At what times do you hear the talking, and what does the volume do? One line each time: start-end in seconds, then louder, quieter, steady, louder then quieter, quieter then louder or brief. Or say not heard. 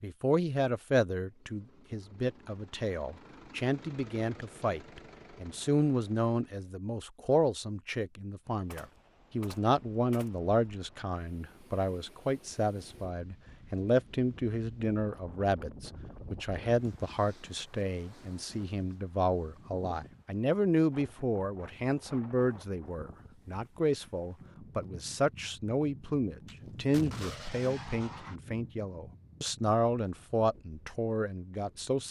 0.0-32.0 steady.